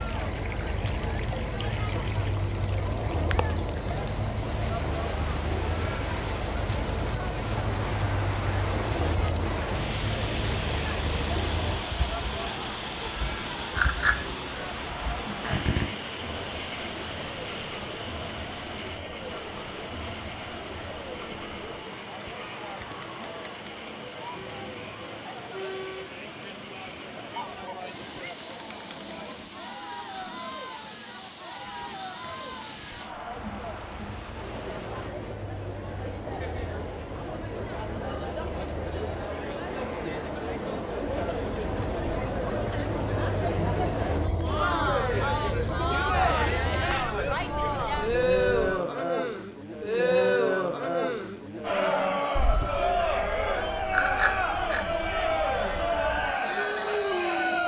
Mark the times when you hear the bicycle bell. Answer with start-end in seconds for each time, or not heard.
13.8-14.2, 53.9-54.9.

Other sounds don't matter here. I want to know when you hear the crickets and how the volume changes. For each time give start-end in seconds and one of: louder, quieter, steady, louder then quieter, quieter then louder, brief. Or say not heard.
0.0-57.6 quieter then louder.